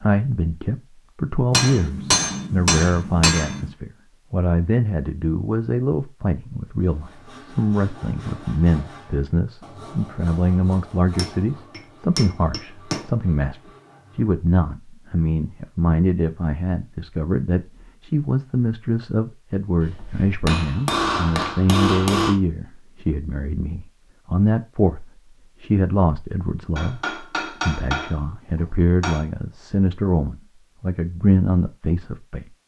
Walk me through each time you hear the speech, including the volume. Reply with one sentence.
The speech can be heard from 0.0 to 32.5 s, at a steady volume.